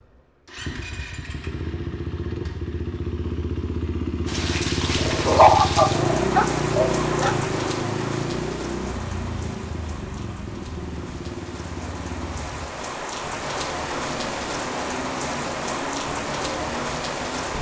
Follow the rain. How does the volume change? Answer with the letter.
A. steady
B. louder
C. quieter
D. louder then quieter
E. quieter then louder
E.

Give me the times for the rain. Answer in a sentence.
The rain can be heard from 4.2 to 17.5 s.